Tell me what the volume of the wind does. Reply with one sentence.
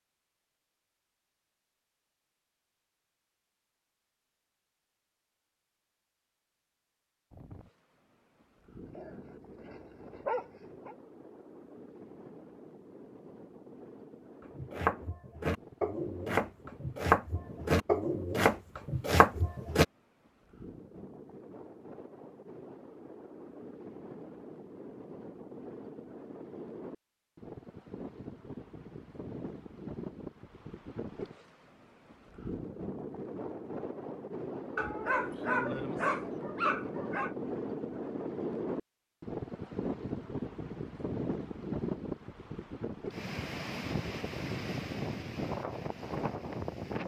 The loudness of the wind goes up.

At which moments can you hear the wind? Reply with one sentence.
You can hear the wind from 7.3 to 47.0 s.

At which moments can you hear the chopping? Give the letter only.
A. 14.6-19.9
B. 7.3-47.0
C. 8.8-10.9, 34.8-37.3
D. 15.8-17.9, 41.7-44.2
A.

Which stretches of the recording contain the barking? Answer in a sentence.
The barking can be heard from 8.8 to 10.9 s and from 34.8 to 37.3 s.